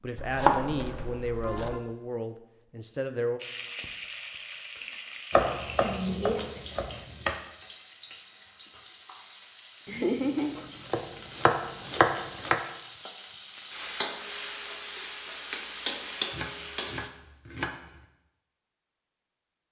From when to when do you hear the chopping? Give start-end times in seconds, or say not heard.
0.1-1.8, 5.3-7.3, 9.8-12.6, 16.3-18.1.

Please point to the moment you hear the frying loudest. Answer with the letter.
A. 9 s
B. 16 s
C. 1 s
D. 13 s
B.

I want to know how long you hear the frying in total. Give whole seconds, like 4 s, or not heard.
14 s.